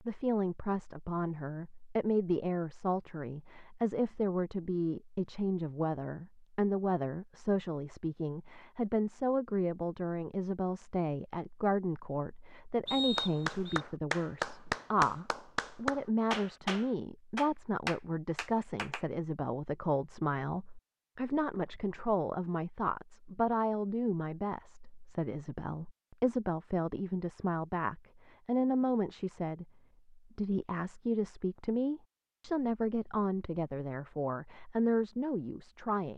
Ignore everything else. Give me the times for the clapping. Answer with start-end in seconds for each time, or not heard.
13.2-19.1.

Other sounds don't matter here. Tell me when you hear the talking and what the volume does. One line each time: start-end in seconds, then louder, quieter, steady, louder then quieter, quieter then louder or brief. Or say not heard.
0.0-36.1 steady.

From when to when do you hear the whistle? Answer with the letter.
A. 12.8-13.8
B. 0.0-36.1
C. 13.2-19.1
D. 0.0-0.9
A.